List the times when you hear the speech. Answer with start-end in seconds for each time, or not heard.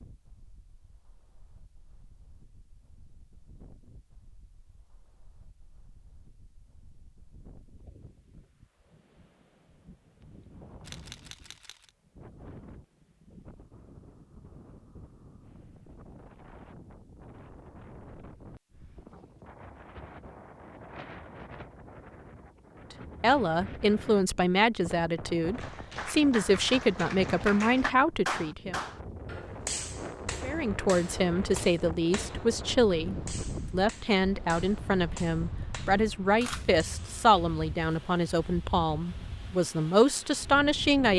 23.2-28.8, 30.4-41.1.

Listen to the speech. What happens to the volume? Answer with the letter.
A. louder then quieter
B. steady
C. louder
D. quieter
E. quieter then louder
B.